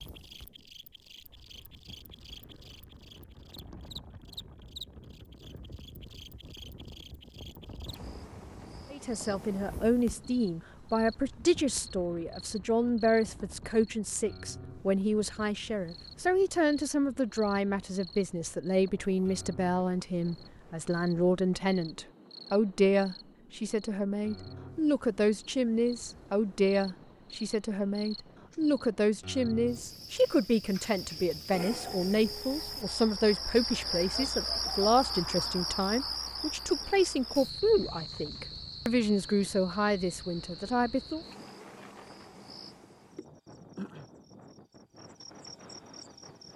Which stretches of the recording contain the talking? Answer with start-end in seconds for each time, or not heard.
8.9-41.2.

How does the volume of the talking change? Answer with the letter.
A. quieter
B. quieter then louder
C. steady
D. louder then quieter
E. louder
C.